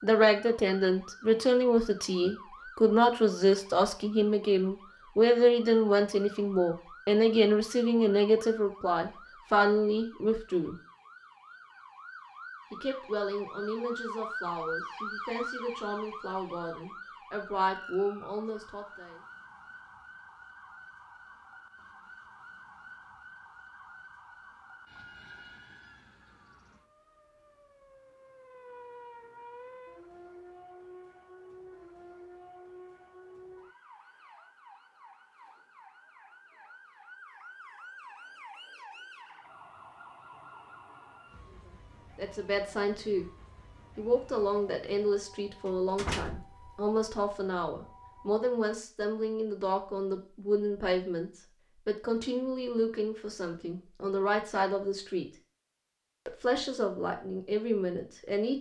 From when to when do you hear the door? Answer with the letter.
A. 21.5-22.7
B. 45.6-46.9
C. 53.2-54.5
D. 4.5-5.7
B.